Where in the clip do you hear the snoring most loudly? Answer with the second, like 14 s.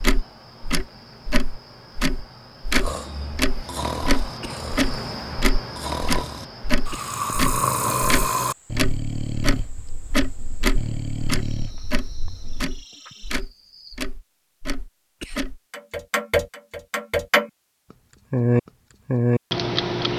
8 s.